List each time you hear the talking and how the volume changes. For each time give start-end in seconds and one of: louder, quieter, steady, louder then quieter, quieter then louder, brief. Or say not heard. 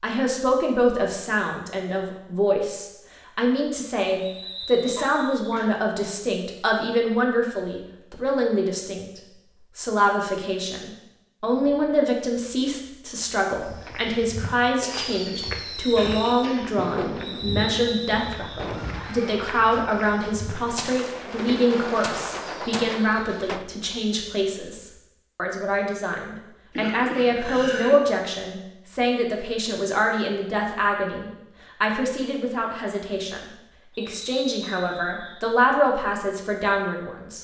0.0-37.3 steady.